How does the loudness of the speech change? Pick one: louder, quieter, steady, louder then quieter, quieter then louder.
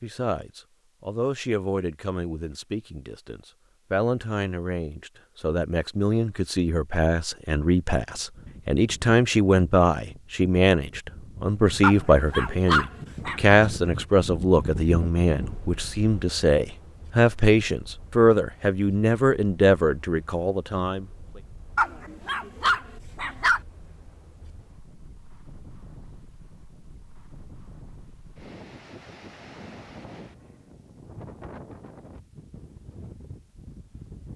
louder.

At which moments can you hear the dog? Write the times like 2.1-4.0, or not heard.
11.8-13.6, 21.8-23.6.